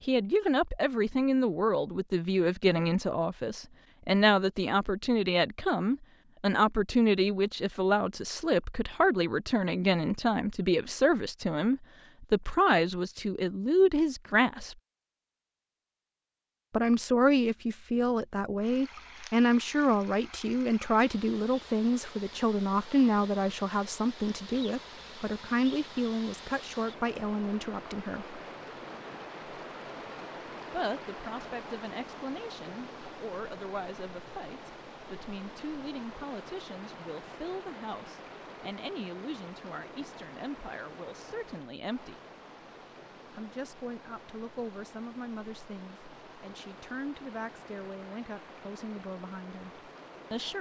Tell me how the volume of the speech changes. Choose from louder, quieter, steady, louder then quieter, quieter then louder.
quieter.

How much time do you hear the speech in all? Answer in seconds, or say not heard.
45 s.